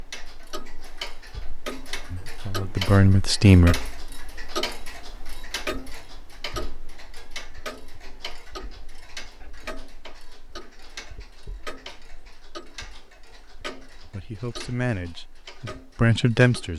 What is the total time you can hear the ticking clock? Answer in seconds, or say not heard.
17 s.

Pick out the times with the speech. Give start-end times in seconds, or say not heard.
2.1-3.8, 14.1-16.7.